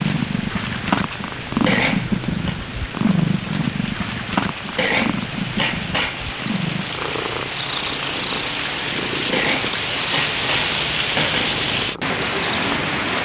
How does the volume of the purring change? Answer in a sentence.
The volume of the purring goes down.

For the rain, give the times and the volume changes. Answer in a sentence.
The rain can be heard from 0.0 to 13.2 s, getting louder.